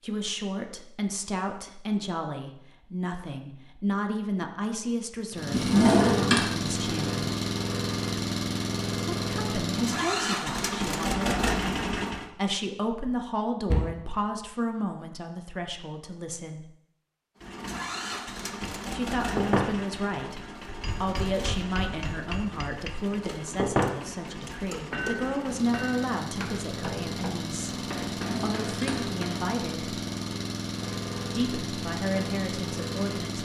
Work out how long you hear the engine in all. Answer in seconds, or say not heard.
23 s.